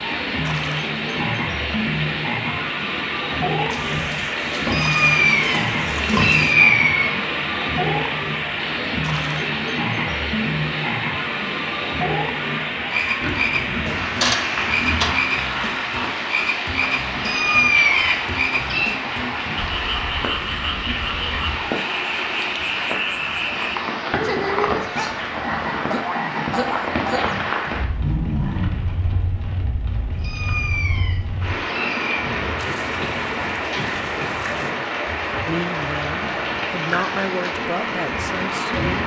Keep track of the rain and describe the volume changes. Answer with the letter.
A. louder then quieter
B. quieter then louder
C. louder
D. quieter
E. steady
E.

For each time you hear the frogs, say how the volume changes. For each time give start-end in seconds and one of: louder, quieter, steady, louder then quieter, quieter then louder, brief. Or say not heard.
0.0-28.7 steady.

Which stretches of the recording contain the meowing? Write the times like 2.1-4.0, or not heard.
4.6-7.2, 17.1-18.9, 30.1-32.3.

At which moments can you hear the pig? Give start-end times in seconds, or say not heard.
3.7-6.5, 13.2-15.2, 32.5-34.8.